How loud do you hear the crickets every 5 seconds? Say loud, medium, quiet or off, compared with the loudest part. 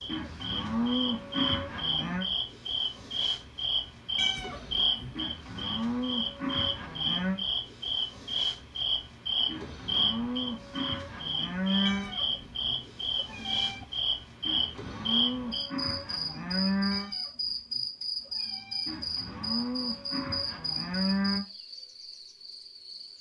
loud, loud, loud, loud, medium.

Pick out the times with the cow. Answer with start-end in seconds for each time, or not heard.
0.1-2.2, 5.2-7.4, 9.4-12.2, 14.4-17.1, 18.9-21.4.